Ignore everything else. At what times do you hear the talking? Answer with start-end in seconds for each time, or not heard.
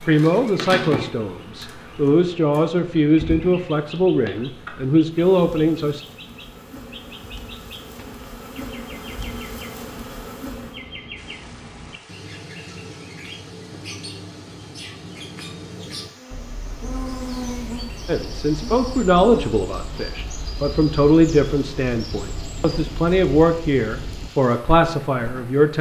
0.0-6.0, 18.1-25.7.